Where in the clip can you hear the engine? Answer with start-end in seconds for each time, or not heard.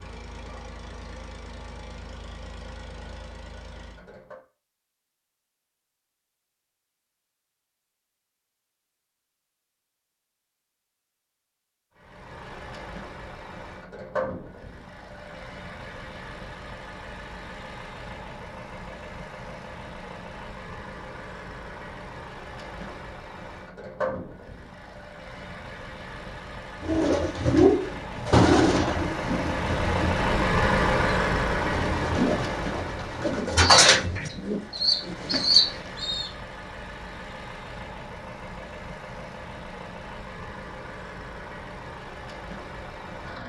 0.0-4.4, 11.9-43.4.